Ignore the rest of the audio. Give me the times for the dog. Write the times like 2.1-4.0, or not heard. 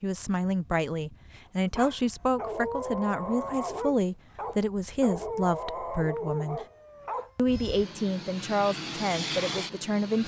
1.8-7.3.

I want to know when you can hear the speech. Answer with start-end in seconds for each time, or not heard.
0.0-6.7, 7.3-10.2.